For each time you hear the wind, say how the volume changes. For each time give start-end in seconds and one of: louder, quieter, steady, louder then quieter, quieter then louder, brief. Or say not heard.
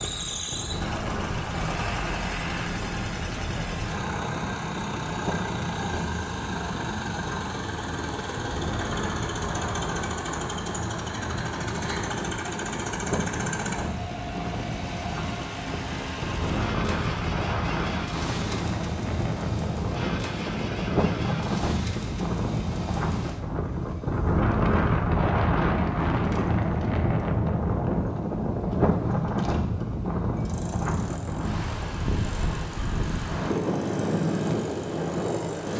0.0-35.7 louder.